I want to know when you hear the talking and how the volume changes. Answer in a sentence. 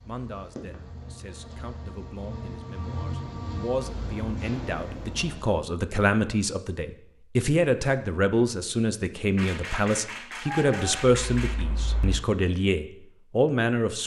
You can hear the talking from 0.0 to 14.0 s, getting louder.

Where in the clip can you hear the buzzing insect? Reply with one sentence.
You can hear the buzzing insect from 0.0 to 5.6 s.